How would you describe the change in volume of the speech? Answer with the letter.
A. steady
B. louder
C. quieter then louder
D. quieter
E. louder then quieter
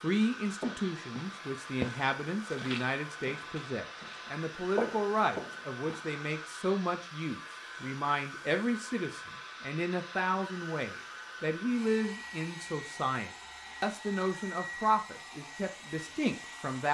A.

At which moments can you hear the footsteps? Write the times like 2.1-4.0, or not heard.
0.5-6.2.